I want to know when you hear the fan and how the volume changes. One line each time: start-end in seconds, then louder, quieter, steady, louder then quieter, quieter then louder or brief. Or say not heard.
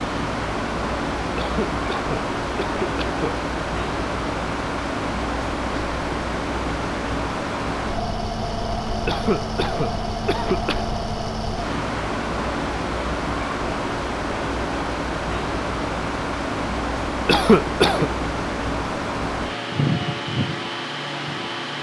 0.0-21.7 steady.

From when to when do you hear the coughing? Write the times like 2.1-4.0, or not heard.
1.4-3.5, 9.1-10.9, 17.2-18.1.